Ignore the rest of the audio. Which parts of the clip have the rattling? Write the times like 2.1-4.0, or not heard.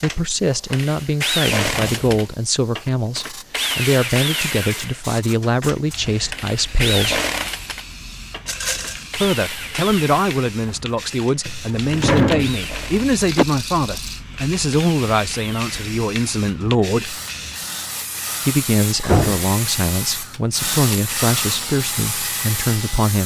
8.4-9.1, 13.2-14.2.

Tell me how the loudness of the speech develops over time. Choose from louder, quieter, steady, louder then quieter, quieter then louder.
steady.